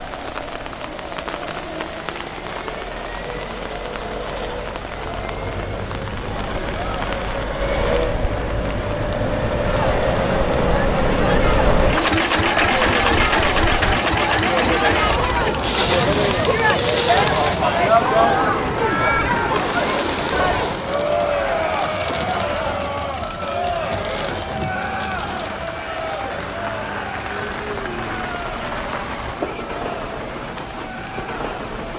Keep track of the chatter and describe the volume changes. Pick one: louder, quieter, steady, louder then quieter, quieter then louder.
louder then quieter.